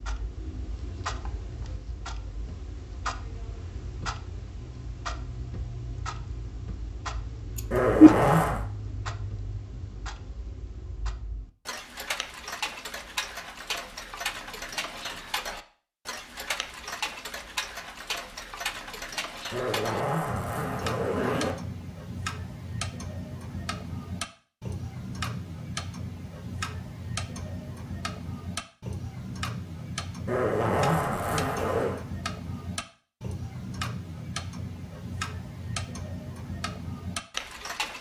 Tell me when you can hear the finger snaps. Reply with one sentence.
You can't hear the finger snaps here.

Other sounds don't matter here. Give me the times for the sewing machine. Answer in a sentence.
The sewing machine can't be heard in this clip.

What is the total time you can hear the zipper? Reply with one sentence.
The zipper can be heard for 5 seconds in total.